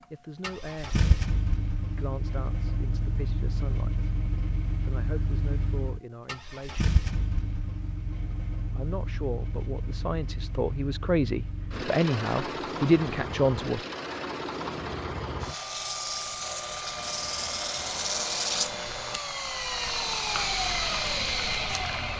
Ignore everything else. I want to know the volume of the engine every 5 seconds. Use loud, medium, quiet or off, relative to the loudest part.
medium, medium, medium, loud, loud.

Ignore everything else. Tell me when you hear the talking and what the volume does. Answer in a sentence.
You can hear the talking from 0.1 to 6.9 s, at a steady volume; and from 8.7 to 13.8 s, getting louder.